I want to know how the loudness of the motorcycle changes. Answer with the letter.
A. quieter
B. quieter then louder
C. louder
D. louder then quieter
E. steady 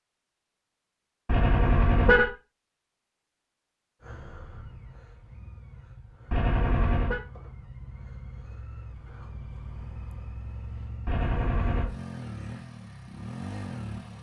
C.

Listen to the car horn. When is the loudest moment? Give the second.
2 s.